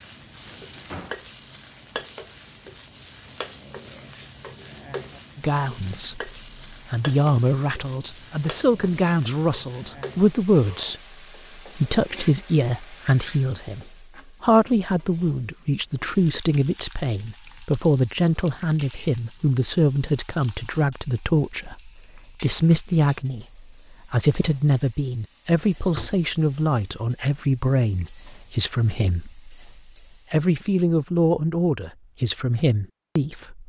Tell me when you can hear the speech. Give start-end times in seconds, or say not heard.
5.3-10.9, 11.6-29.5, 30.3-33.6.